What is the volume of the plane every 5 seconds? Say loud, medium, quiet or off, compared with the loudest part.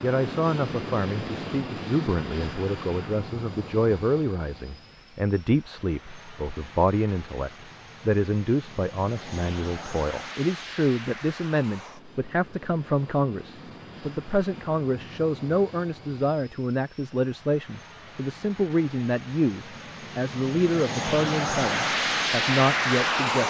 medium, quiet, quiet, quiet, loud.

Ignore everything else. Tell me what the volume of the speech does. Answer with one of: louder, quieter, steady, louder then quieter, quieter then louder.
steady.